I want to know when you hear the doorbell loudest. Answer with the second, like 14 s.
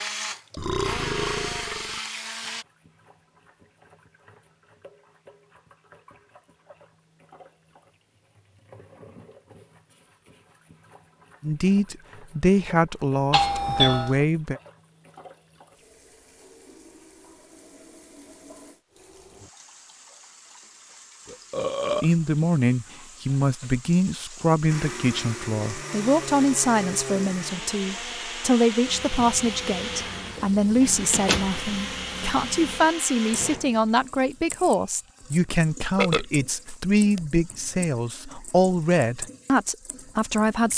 14 s.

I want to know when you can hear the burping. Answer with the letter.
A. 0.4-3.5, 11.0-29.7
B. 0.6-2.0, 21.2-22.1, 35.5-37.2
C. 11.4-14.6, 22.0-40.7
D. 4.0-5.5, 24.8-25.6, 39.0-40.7
B.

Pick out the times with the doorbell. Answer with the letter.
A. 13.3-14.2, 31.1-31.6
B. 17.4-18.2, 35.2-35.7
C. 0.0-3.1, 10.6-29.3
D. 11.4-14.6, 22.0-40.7
A.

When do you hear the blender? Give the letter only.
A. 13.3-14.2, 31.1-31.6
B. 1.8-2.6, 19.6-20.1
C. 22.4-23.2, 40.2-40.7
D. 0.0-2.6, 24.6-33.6
D.